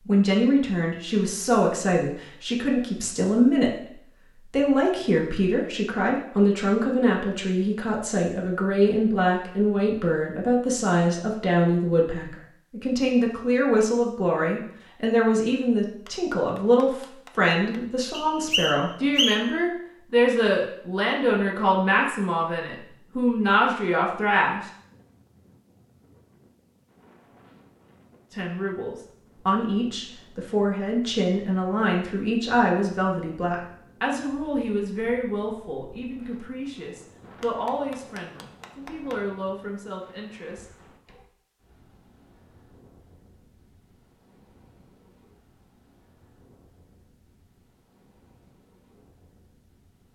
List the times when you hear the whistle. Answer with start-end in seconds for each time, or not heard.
18.1-19.4.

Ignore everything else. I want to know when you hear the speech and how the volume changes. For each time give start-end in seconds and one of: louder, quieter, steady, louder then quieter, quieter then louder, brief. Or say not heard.
0.1-24.6 steady
28.3-40.6 quieter.